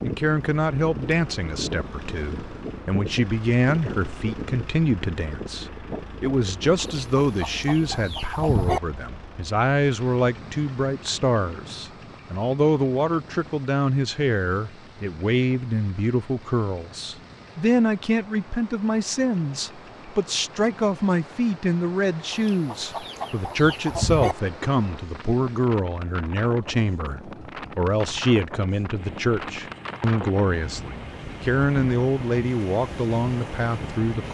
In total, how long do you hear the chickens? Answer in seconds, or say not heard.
4 s.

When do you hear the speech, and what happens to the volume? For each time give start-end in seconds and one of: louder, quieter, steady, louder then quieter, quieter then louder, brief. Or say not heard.
0.0-34.2 steady.